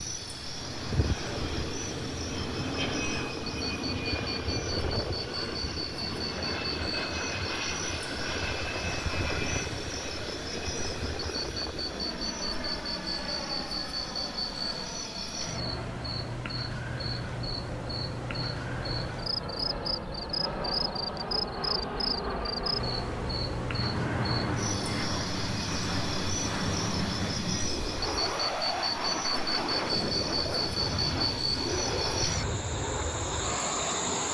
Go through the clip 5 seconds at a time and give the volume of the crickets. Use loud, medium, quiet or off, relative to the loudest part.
medium, medium, loud, loud, loud, loud, loud.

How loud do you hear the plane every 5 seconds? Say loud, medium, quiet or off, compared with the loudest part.
loud, loud, medium, medium, loud, loud, loud.